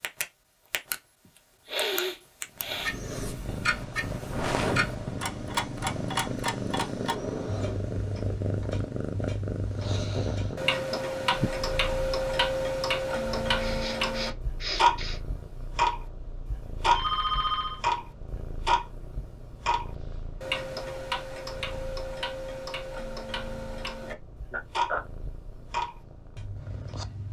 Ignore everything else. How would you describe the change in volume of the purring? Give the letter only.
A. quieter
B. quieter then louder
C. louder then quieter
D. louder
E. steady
A.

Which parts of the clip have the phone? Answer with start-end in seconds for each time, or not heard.
16.9-17.8.